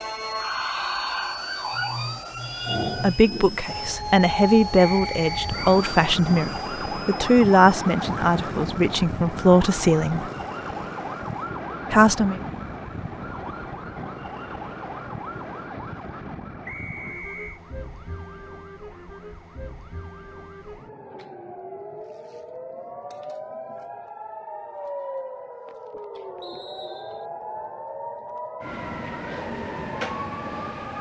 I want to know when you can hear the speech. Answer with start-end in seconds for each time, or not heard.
3.0-10.2, 11.9-12.3.